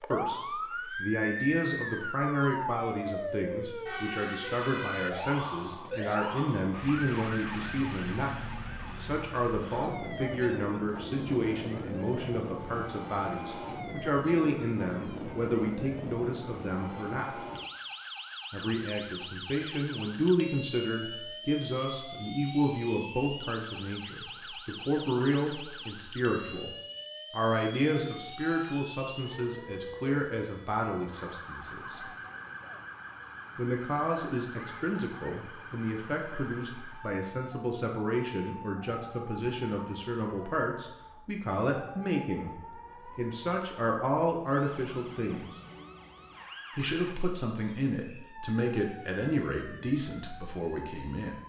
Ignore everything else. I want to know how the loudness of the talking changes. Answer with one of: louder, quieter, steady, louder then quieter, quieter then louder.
steady.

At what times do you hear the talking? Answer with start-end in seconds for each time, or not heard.
0.1-8.4, 9.0-17.4, 18.5-26.7, 27.3-32.0, 33.5-45.5, 46.8-51.4.